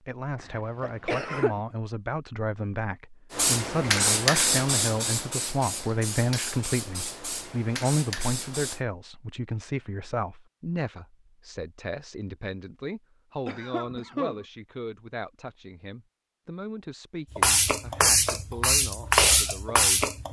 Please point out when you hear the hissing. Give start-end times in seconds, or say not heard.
3.3-8.8, 17.3-20.2.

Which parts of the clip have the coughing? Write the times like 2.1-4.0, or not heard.
0.8-1.6, 13.4-14.4.